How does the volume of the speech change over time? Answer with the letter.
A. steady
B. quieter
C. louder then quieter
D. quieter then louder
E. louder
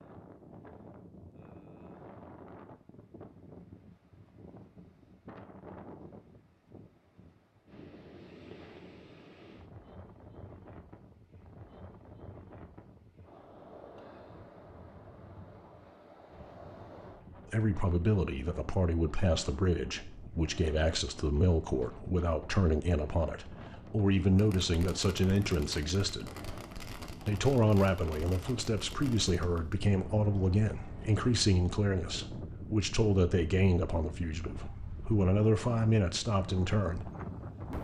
A.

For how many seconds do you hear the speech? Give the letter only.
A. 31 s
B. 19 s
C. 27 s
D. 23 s
B.